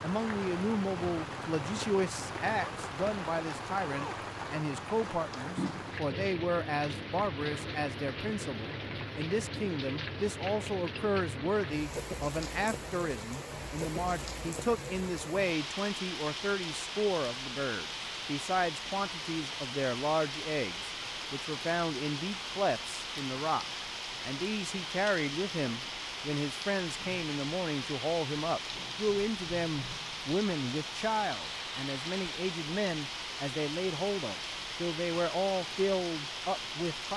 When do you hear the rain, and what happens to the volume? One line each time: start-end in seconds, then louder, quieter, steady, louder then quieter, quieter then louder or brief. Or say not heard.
0.0-37.1 steady.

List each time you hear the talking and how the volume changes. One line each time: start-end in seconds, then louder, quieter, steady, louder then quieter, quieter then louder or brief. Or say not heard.
0.0-37.1 steady.